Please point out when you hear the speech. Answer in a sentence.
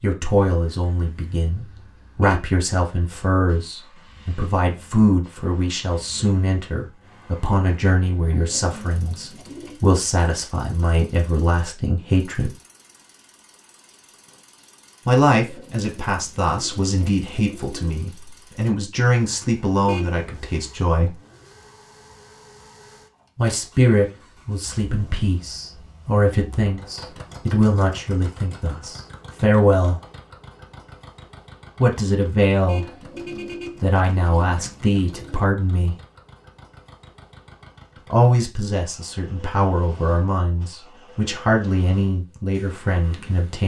You can hear the speech from 0.0 to 12.6 s, from 15.1 to 21.1 s, from 23.4 to 30.0 s, from 31.8 to 32.9 s, from 33.8 to 36.0 s and from 38.1 to 43.6 s.